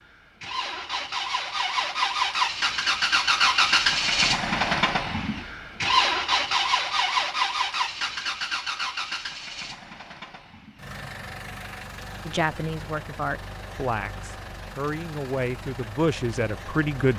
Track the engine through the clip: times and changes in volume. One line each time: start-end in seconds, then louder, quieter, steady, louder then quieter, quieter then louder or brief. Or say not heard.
0.0-17.1 quieter.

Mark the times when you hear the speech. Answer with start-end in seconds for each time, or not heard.
12.2-17.1.